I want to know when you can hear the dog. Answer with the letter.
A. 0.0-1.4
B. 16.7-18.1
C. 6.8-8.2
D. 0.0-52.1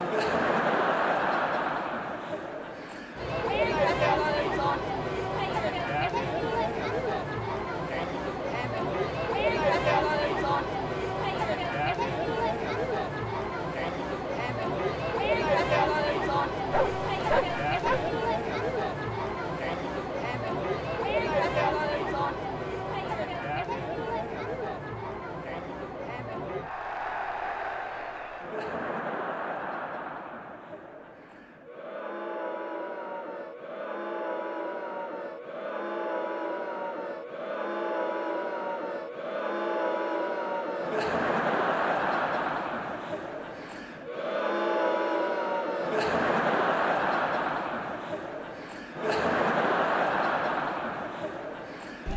B.